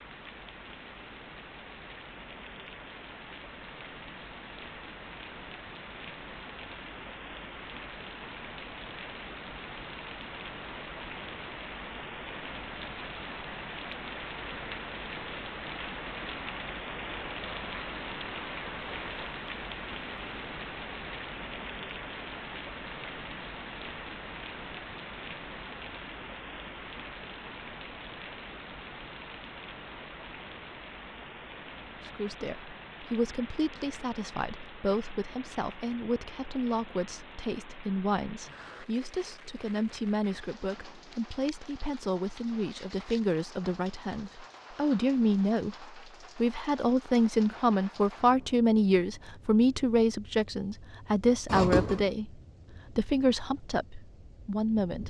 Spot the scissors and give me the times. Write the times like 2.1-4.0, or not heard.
51.5-52.1.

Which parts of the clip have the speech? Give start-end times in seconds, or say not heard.
32.0-55.0.